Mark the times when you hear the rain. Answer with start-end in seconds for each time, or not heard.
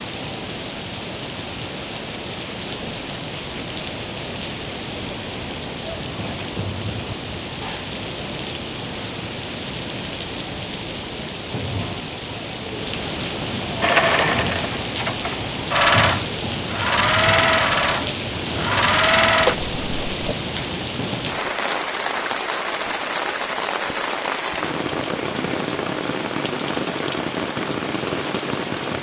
0.0-28.9.